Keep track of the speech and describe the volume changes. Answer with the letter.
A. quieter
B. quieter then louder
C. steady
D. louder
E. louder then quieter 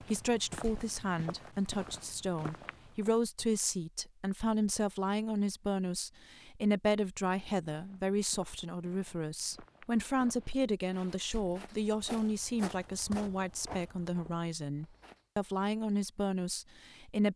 C.